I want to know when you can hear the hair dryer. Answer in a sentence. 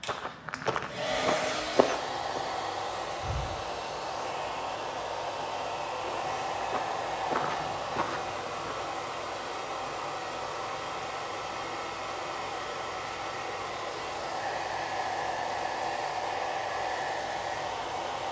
You can hear the hair dryer from 0.0 to 18.2 s.